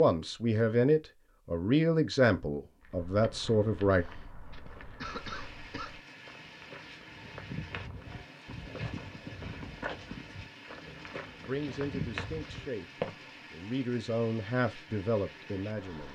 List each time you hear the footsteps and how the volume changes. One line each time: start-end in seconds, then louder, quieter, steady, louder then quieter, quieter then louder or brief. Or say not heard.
2.8-13.2 louder.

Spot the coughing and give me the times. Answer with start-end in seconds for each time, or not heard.
4.5-6.0.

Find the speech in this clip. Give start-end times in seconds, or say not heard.
0.0-4.0, 10.8-16.1.